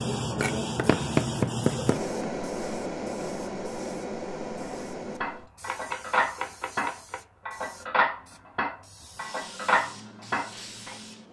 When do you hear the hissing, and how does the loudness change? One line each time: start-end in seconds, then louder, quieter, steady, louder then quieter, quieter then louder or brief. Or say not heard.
0.0-11.2 quieter then louder.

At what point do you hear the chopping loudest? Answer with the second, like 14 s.
1 s.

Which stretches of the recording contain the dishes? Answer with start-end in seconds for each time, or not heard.
4.6-10.9.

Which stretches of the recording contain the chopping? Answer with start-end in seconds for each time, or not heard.
0.4-2.2, 5.7-7.2.